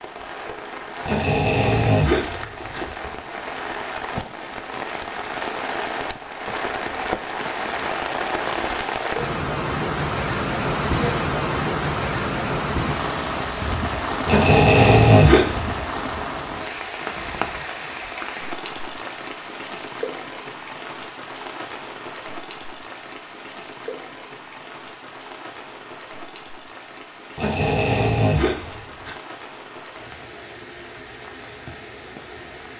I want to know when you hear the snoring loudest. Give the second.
15 s.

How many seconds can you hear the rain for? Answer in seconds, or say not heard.
33 s.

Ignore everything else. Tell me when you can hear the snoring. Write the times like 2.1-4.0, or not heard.
1.1-2.8, 14.2-15.8, 27.4-29.1.